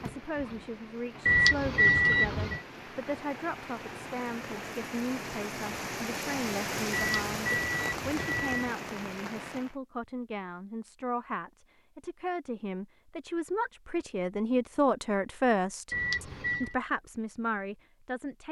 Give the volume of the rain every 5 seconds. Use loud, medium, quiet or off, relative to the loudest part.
medium, loud, off, off.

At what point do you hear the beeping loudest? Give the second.
2 s.